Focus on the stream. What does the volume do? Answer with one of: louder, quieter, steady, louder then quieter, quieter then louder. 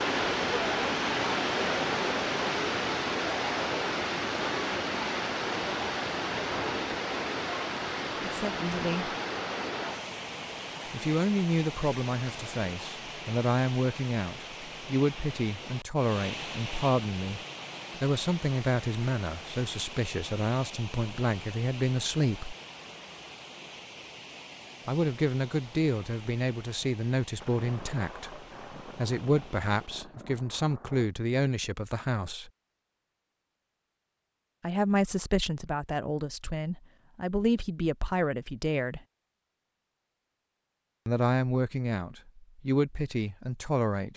quieter.